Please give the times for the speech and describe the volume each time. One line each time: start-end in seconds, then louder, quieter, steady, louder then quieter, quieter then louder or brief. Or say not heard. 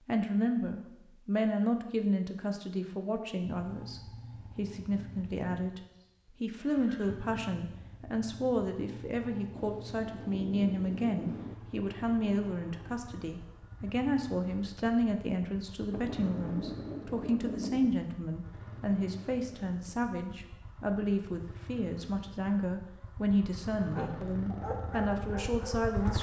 0.1-26.1 steady.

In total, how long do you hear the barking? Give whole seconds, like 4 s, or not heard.
2 s.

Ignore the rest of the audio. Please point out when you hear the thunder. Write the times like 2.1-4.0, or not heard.
9.6-11.6, 15.9-17.9.